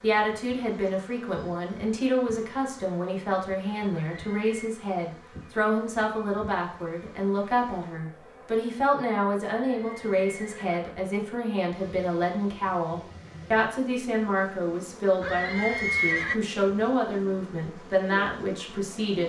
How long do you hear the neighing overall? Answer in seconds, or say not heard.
3 s.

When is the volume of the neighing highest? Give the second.
16 s.